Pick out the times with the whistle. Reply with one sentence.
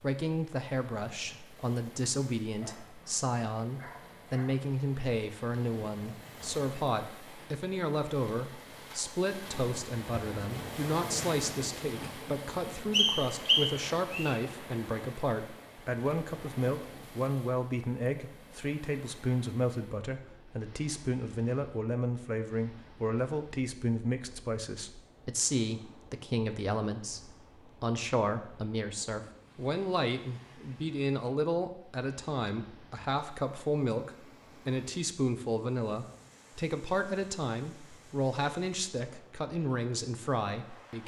You can hear the whistle from 12.9 to 14.3 s.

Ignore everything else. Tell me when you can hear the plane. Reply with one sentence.
The plane can't be heard in this clip.